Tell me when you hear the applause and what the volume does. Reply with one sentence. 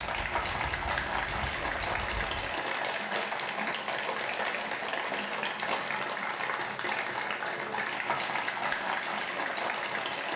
You can hear the applause from 0.0 to 10.3 s, at a steady volume.